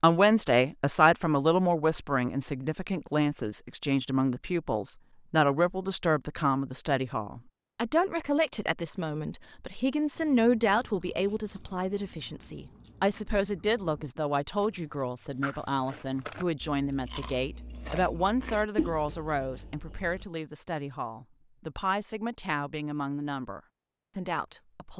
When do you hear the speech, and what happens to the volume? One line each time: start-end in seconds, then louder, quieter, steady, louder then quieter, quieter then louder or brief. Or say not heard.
0.0-24.9 quieter.